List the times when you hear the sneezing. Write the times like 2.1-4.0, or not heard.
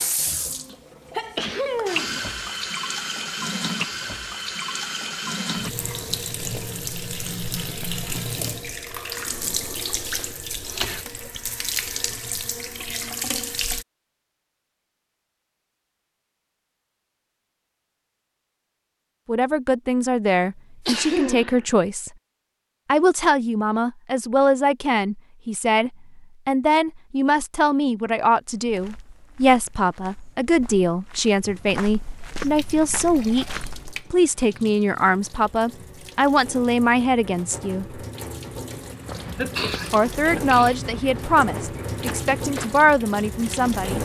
0.5-2.2, 20.4-21.6, 39.4-40.8.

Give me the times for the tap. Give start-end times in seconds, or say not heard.
0.0-13.8, 32.5-44.0.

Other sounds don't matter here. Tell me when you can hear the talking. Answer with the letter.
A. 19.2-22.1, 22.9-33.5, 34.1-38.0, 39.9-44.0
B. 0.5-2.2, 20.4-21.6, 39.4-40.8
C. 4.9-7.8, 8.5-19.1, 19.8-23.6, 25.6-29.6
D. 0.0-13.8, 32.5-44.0
A.